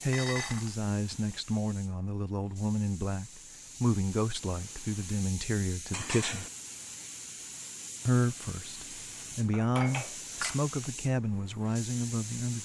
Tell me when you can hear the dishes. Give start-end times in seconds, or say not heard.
0.1-0.8, 5.9-6.5, 9.4-10.6.